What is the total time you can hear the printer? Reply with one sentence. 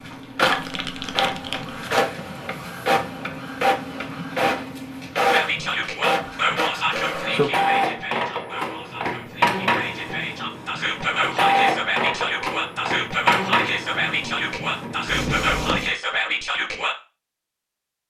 You can hear the printer for 16 seconds altogether.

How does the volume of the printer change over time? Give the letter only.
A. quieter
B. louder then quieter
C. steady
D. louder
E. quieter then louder
C.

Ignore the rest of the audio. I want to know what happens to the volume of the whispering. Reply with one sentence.
The volume of the whispering goes down, then up.